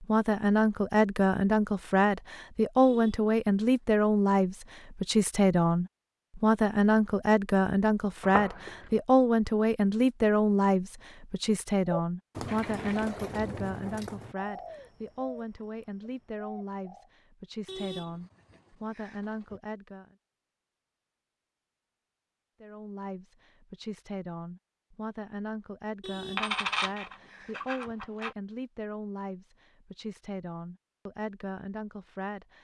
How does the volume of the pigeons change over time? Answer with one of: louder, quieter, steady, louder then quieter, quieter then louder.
quieter.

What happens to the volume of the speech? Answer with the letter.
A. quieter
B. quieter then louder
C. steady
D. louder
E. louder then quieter
A.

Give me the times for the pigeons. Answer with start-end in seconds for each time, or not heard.
11.8-17.1.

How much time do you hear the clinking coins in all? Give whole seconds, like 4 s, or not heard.
4 s.